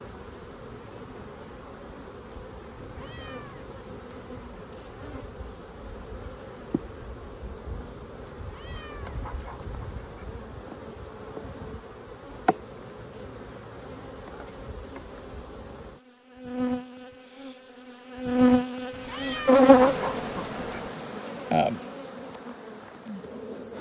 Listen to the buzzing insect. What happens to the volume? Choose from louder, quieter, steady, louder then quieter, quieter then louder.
louder.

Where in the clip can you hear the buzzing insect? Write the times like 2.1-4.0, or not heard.
0.0-23.7.